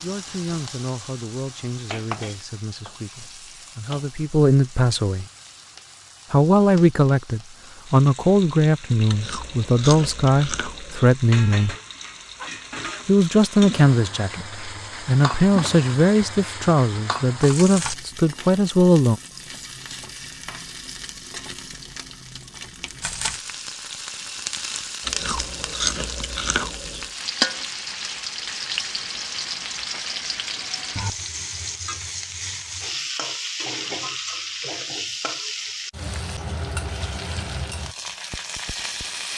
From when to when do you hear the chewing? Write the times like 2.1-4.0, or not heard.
9.1-11.1, 25.0-27.1.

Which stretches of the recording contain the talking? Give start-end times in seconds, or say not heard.
0.0-5.2, 6.3-11.8, 13.1-19.2.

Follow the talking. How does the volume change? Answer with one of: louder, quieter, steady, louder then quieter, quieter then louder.
louder.